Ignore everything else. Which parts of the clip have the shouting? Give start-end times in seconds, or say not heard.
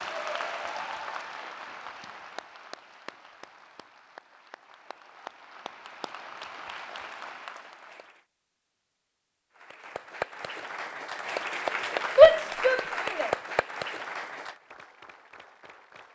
12.2-13.3.